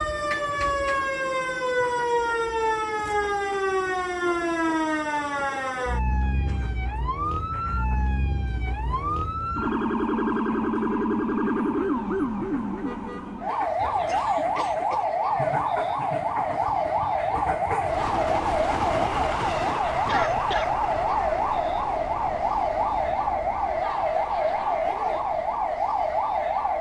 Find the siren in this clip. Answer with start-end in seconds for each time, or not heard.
0.0-26.7.